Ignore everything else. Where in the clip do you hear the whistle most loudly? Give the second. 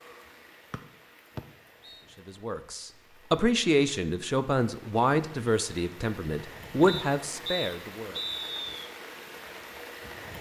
8 s.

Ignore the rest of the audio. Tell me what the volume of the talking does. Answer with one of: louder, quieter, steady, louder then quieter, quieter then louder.
quieter then louder.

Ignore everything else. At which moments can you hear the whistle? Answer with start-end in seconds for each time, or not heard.
0.7-2.0, 6.8-8.9.